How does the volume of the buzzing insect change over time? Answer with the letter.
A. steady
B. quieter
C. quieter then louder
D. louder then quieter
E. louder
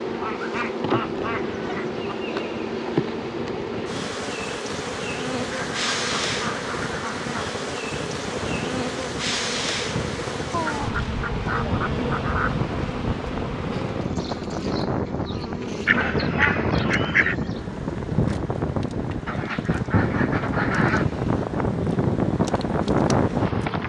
B.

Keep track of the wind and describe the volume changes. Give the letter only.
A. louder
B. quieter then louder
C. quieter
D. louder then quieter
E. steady
A.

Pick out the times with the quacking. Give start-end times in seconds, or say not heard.
0.1-2.0, 5.5-7.5, 10.5-12.6, 15.8-17.4, 19.2-21.1.